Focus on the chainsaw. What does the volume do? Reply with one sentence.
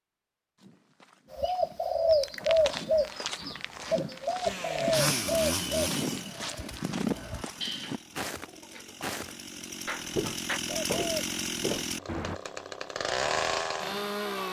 The volume of the chainsaw goes down, then up.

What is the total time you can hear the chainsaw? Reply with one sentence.
The chainsaw can be heard for 10 seconds in total.